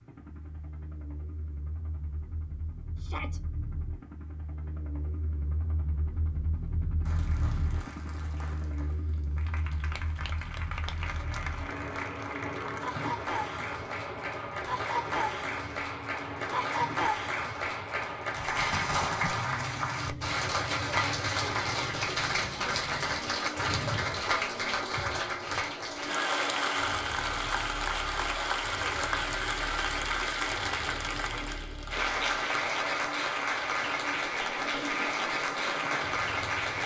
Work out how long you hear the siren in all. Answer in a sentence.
The siren can't be heard in this clip.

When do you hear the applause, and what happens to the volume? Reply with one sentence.
You can hear the applause from 7.0 to 36.8 s, getting louder.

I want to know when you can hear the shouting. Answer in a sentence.
The shouting can be heard from 3.0 to 3.4 s, from 16.4 to 16.8 s and from 31.1 to 31.6 s.